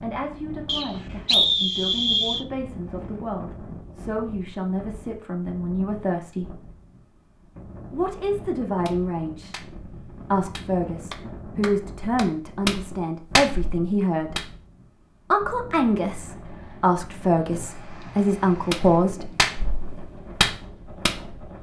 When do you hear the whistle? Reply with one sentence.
The whistle can be heard from 0.7 to 2.5 s.